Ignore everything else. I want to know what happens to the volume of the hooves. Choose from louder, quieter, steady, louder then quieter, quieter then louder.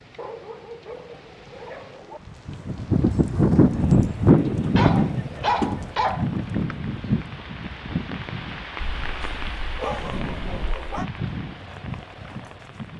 quieter.